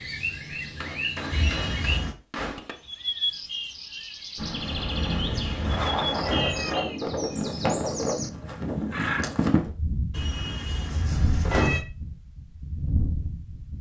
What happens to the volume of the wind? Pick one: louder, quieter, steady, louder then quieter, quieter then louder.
quieter.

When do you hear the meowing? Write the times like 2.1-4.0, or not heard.
1.3-2.1, 4.8-6.8, 10.1-11.8.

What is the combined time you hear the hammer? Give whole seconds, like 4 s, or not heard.
2 s.